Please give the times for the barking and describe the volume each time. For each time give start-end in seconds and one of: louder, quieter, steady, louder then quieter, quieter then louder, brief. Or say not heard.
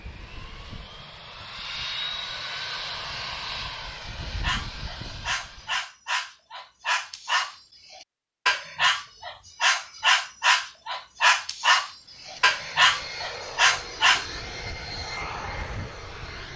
4.2-14.2 louder.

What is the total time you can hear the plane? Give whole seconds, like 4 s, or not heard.
10 s.